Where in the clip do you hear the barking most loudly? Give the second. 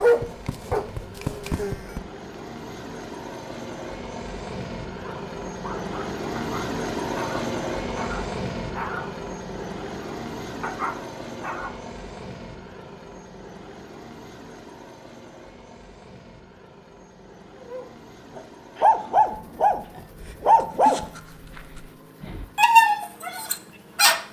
23 s.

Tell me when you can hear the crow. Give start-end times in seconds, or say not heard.
not heard.